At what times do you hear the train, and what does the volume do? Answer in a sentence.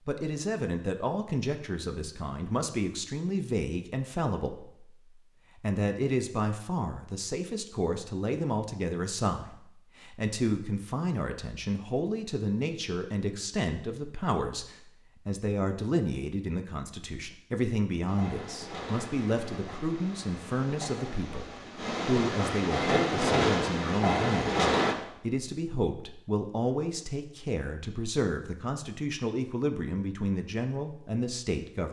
The train can be heard from 18.1 to 24.9 s, getting louder.